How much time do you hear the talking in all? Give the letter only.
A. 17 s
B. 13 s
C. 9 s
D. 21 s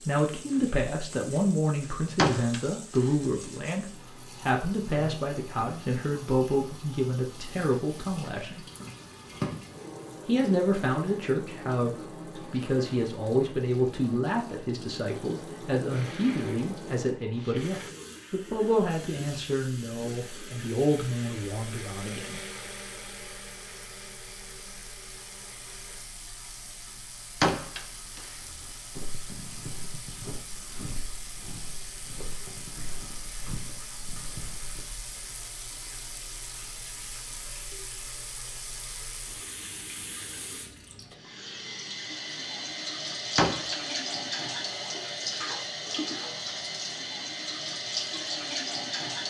D.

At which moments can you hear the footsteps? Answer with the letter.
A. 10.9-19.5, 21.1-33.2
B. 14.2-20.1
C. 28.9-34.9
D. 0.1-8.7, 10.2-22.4
C.